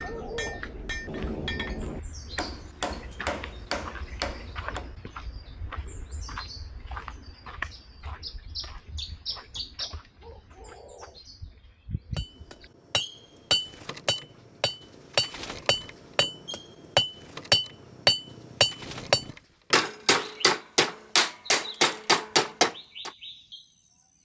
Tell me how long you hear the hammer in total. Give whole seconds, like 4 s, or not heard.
16 s.